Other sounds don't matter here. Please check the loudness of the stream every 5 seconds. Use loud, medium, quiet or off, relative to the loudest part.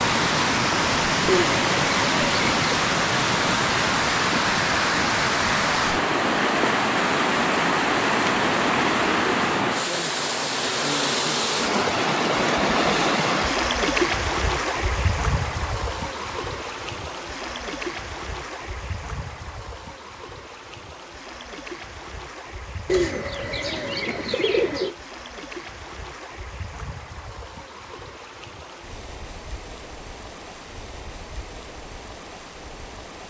loud, loud, loud, medium, quiet, quiet, quiet.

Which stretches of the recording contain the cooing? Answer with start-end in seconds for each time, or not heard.
1.2-2.8, 22.9-24.9.